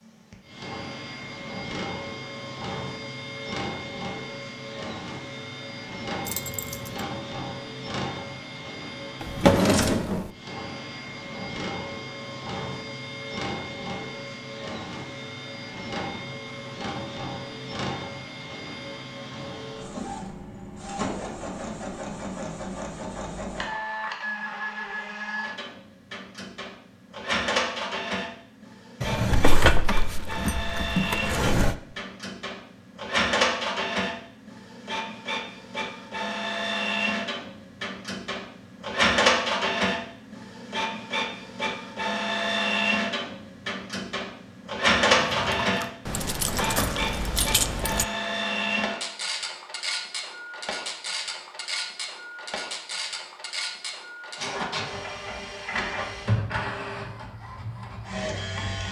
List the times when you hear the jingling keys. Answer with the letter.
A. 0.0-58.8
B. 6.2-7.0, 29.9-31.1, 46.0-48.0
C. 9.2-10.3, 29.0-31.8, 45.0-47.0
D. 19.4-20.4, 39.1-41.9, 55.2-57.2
B.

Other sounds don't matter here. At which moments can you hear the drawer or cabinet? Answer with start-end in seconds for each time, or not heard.
9.2-10.3, 29.0-31.8, 45.0-47.0.